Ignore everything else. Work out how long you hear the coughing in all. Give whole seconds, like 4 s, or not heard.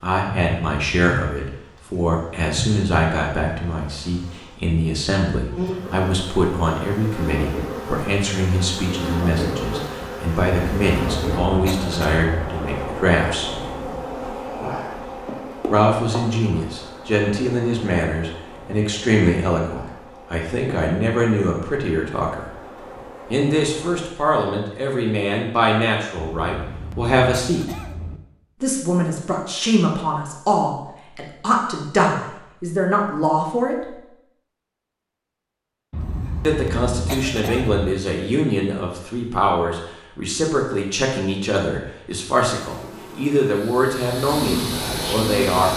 6 s.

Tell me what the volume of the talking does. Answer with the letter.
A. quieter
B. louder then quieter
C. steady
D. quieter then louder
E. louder
C.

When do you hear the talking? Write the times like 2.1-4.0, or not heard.
0.0-13.6, 15.7-22.5, 23.3-27.8, 28.6-34.0, 36.4-45.7.